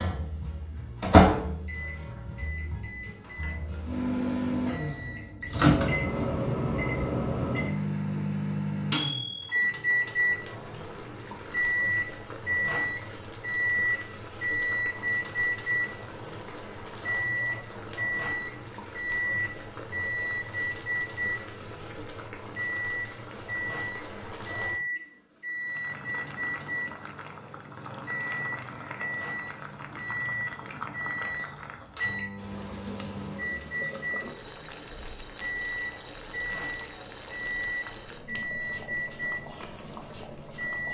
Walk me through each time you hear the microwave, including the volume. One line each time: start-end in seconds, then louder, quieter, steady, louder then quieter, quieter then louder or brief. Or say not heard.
0.0-40.8 quieter.